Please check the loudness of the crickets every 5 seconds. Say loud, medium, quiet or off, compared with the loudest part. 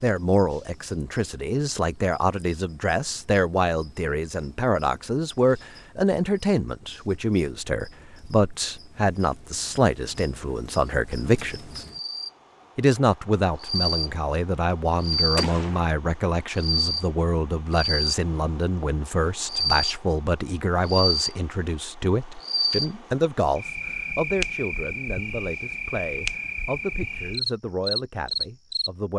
quiet, quiet, medium, loud, loud, loud.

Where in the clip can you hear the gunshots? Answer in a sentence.
You can hear the gunshots from 15.3 to 15.9 s.